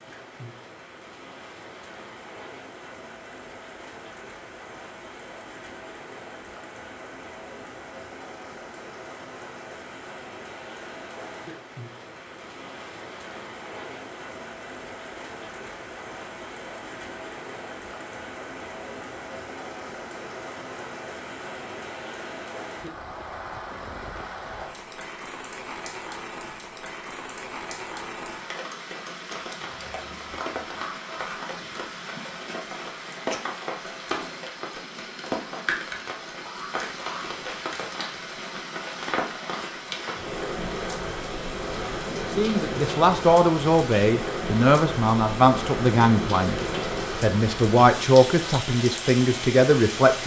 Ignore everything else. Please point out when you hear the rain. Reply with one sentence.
You can hear the rain from 0.0 to 50.2 s.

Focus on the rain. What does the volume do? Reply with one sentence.
The volume of the rain goes up.